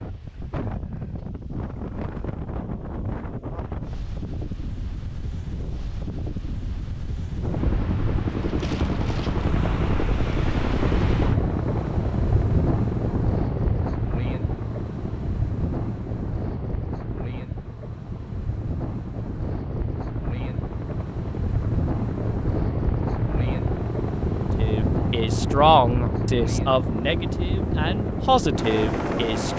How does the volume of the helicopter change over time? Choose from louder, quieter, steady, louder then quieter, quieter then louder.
quieter then louder.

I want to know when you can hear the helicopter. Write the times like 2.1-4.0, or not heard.
7.4-29.5.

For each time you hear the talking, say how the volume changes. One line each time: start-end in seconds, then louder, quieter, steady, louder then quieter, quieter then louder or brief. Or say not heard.
24.6-29.5 quieter then louder.